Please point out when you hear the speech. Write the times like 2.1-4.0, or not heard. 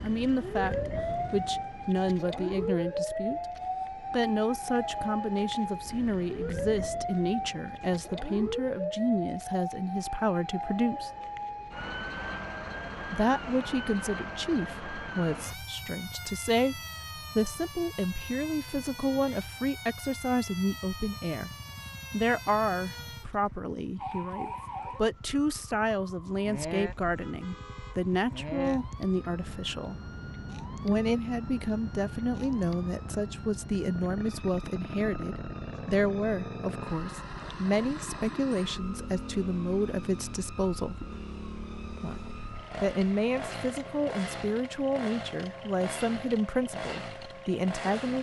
0.0-11.1, 13.1-21.5, 22.1-29.9, 30.8-41.0, 42.0-48.1.